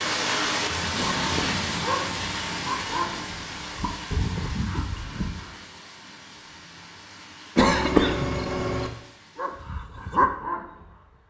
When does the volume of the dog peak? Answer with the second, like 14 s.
10 s.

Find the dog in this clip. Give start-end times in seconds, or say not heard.
1.8-5.5, 9.3-11.2.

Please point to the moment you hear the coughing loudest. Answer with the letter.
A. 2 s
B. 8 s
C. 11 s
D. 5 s
B.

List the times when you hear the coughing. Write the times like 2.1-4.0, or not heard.
0.9-1.6, 7.5-8.9.